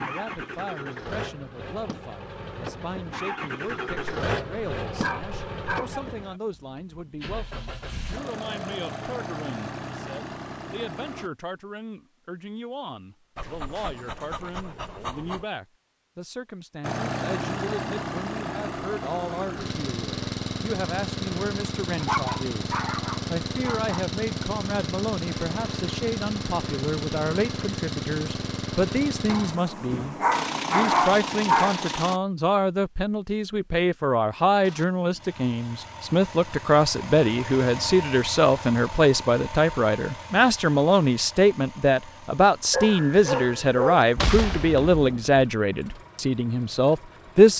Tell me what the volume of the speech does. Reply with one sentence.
The volume of the speech goes up.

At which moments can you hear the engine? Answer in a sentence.
You can hear the engine from 0.0 to 11.3 s, from 16.8 to 32.2 s and from 34.6 to 47.5 s.